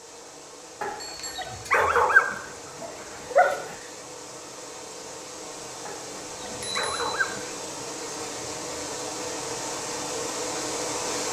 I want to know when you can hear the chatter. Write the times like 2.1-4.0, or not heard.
not heard.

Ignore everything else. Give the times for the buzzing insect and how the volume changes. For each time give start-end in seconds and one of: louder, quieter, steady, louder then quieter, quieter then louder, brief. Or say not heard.
0.0-11.2 louder.